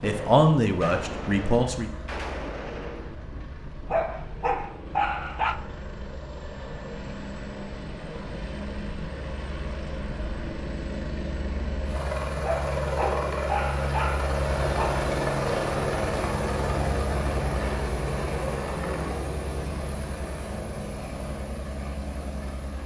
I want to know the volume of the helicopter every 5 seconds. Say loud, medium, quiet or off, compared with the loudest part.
quiet, medium, loud, loud, medium.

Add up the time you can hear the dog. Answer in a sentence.
The dog can be heard for 4 seconds in total.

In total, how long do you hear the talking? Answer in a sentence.
The talking can be heard for 2 seconds in total.